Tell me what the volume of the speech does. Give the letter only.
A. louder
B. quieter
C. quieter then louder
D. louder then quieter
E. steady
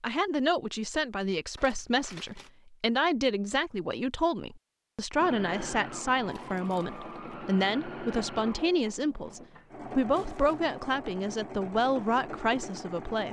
E.